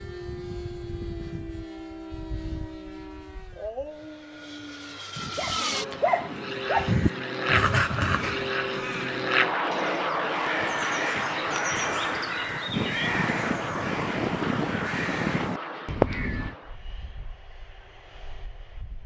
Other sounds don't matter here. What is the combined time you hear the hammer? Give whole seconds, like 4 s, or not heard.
not heard.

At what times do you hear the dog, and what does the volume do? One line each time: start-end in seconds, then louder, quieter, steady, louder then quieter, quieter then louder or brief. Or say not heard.
0.0-8.5 louder.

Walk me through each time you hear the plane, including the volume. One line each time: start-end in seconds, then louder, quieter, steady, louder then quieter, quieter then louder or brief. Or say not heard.
0.0-19.0 louder then quieter.